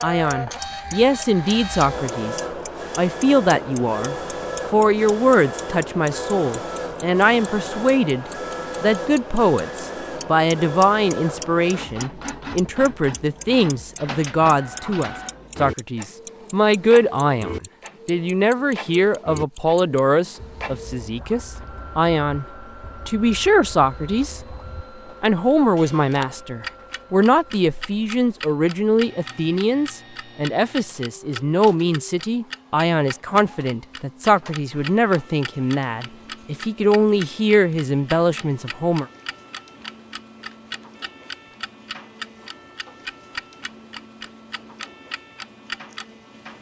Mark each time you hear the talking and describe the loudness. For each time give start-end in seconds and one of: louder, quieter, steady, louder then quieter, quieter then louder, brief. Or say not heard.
0.0-22.4 steady
23.1-24.6 brief
25.2-39.0 steady.